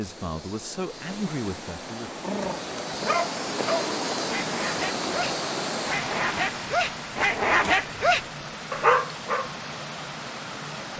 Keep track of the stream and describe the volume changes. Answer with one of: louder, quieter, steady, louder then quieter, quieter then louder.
louder then quieter.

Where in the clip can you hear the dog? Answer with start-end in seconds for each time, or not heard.
2.2-9.5.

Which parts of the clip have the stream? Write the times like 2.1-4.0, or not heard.
0.0-10.9.